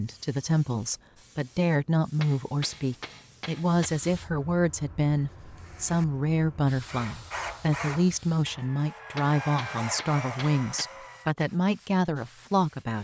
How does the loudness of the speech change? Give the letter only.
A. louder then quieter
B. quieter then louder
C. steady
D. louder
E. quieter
C.